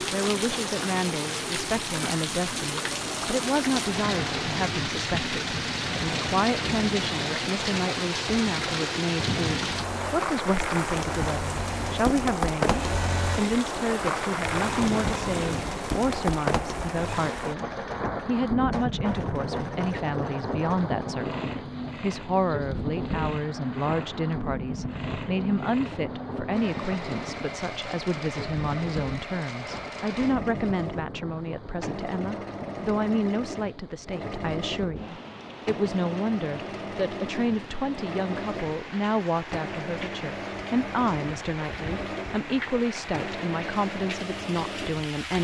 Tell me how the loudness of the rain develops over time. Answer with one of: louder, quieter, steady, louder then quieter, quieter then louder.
quieter.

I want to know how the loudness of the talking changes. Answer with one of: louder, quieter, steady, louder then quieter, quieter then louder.
steady.